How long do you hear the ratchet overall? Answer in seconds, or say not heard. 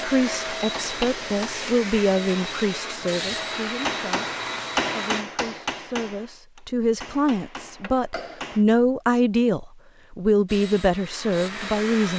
not heard.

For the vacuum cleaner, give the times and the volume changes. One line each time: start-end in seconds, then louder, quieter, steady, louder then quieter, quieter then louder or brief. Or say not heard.
0.0-5.2 steady
10.4-12.1 brief.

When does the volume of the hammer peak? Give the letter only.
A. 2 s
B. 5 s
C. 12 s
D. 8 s
B.